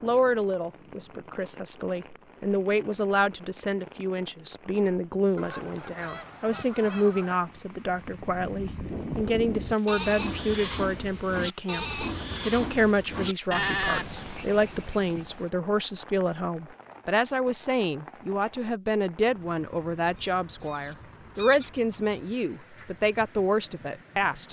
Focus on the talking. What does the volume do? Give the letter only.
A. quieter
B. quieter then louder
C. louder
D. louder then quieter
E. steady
E.